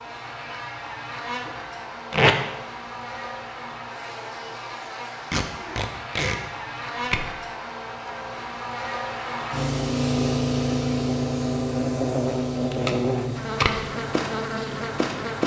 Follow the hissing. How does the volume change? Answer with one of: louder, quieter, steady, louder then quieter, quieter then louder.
quieter.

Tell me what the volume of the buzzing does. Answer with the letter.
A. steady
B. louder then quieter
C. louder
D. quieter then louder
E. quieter
C.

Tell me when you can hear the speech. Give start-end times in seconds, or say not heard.
not heard.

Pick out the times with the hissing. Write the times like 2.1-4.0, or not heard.
9.5-15.4.